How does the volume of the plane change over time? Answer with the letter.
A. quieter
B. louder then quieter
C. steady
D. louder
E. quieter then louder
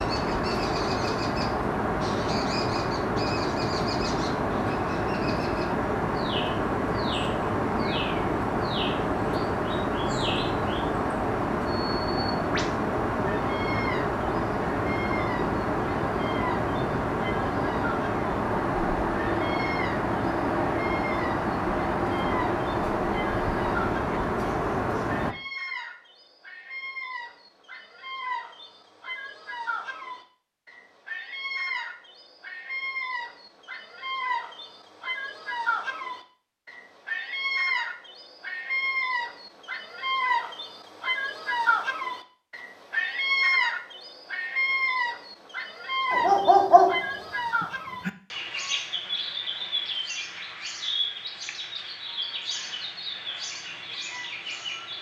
C.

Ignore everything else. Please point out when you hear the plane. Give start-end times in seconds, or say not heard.
0.0-25.4.